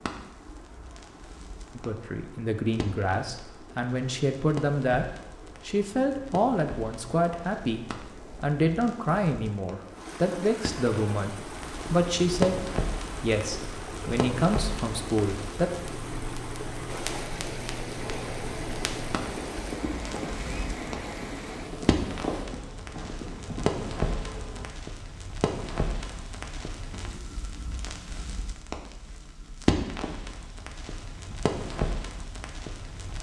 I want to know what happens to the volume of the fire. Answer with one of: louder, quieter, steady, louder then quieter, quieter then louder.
louder.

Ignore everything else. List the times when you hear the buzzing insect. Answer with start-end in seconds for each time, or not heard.
18.1-24.6.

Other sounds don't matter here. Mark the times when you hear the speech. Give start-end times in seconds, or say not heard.
1.8-5.0, 5.7-15.7.